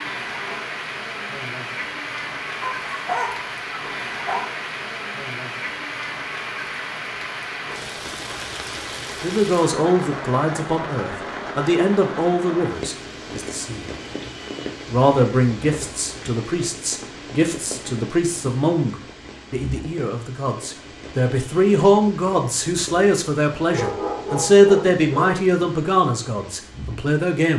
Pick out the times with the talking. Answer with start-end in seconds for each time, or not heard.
9.2-13.8, 14.8-27.5.